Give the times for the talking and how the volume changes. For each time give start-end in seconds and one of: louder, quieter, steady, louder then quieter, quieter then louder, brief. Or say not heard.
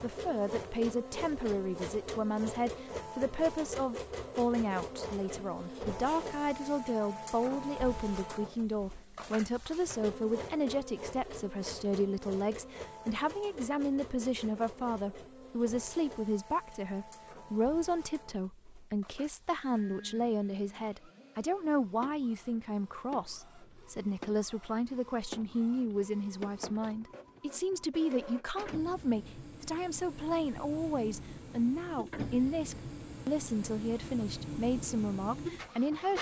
0.0-36.1 steady.